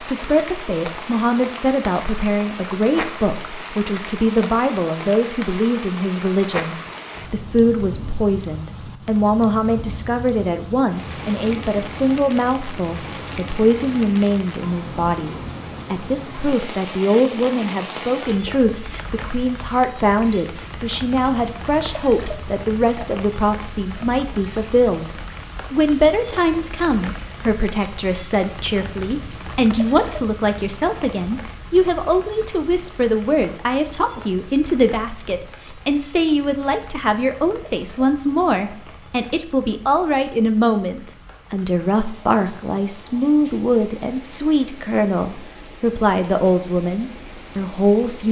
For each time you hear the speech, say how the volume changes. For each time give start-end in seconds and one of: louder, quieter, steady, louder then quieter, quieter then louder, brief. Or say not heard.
0.0-48.2 steady.